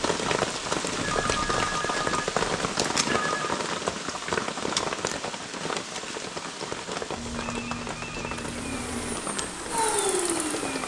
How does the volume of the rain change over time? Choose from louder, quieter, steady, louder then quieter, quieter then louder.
quieter.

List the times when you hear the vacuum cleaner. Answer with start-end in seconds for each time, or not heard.
8.3-10.8.